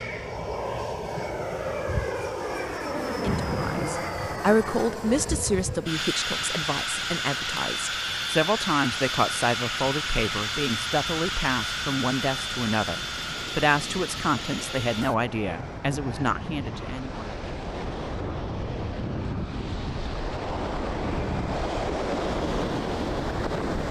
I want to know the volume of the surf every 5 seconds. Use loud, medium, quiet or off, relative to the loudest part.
quiet, quiet, quiet, medium, loud.